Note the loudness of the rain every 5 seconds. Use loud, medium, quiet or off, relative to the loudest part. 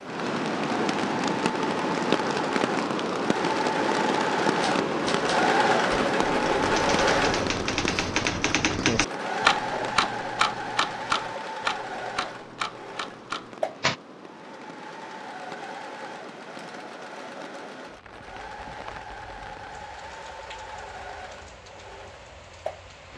loud, loud, quiet, quiet, quiet.